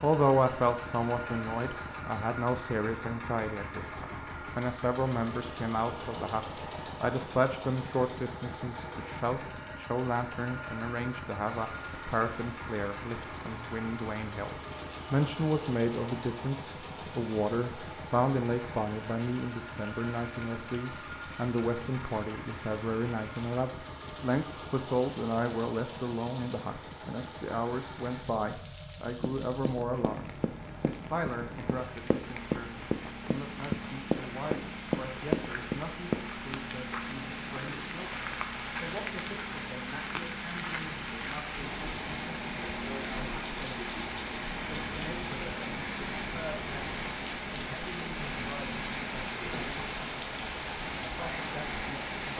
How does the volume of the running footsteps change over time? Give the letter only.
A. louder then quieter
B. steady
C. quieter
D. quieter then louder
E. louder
E.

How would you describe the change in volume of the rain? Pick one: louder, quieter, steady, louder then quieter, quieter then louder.
louder.